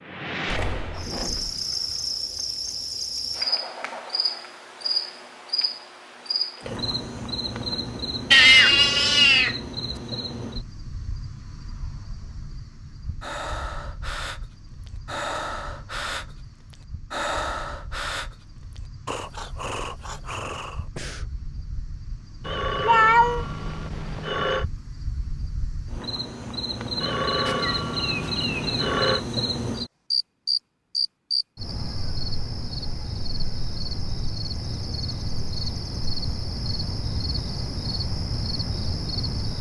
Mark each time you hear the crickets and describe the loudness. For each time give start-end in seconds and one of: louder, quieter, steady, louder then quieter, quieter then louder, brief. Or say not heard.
0.0-39.5 quieter then louder.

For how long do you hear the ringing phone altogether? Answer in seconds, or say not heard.
5 s.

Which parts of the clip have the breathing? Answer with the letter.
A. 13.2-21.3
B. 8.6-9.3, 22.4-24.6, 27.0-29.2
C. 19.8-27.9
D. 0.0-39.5
A.